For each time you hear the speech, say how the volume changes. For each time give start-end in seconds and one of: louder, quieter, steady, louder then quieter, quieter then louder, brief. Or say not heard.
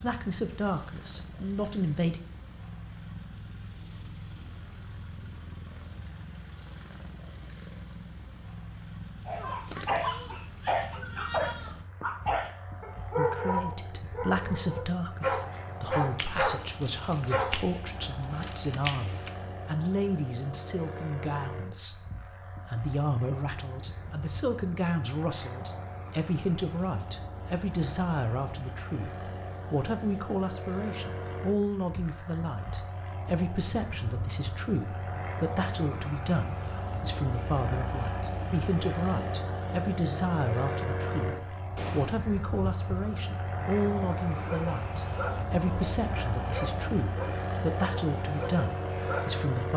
0.0-2.2 brief
13.2-49.7 steady.